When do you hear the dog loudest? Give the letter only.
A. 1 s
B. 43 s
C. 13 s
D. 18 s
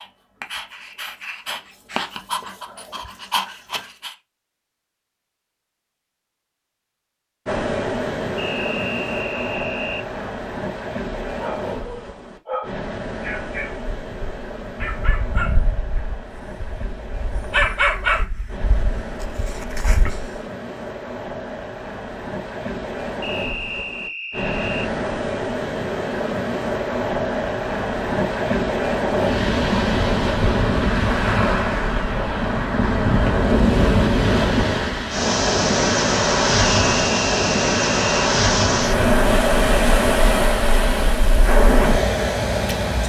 D.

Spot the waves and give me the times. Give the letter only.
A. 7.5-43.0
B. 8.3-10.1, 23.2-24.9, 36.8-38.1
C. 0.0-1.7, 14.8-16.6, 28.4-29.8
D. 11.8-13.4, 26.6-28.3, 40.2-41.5
A.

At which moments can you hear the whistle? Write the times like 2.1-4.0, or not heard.
8.3-10.1, 23.2-24.9, 36.8-38.1.